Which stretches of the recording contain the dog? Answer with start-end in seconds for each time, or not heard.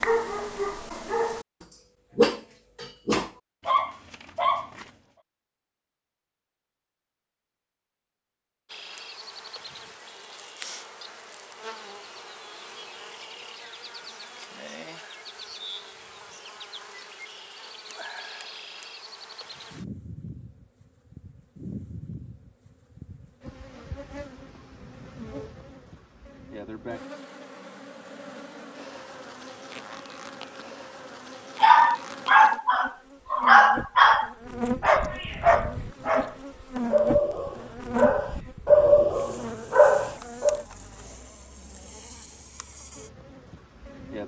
0.0-4.8, 31.6-40.6.